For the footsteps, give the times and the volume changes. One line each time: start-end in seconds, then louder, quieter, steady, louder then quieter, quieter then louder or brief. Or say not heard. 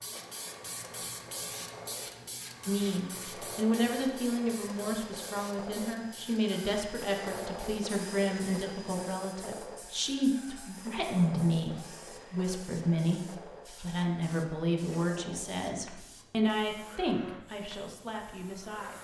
not heard.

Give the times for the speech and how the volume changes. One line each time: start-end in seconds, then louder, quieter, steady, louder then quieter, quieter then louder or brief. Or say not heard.
2.6-18.9 steady.